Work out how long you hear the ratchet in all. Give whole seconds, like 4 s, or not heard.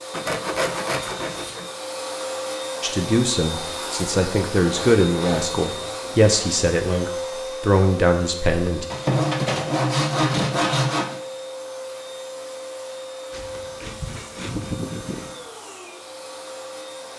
not heard.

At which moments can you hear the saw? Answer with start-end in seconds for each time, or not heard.
0.1-1.6, 4.7-7.0, 8.9-11.2, 13.3-15.3.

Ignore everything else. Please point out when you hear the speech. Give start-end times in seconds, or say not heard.
2.8-8.8.